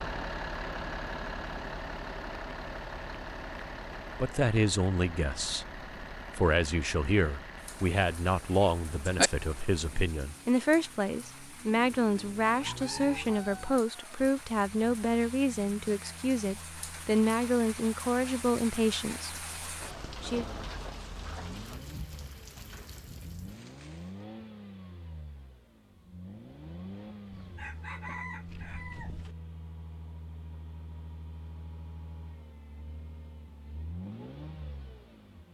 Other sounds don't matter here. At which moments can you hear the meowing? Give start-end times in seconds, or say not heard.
8.6-9.3.